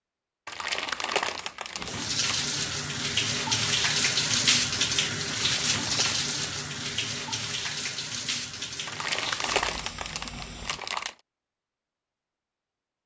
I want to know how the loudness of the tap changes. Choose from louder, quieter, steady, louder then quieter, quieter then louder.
quieter.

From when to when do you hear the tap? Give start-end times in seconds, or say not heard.
1.8-10.8.